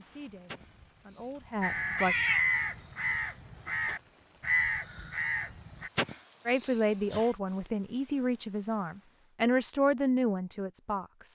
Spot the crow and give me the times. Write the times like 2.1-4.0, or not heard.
1.6-5.9.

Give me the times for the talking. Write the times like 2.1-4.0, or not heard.
0.0-2.1, 6.5-11.3.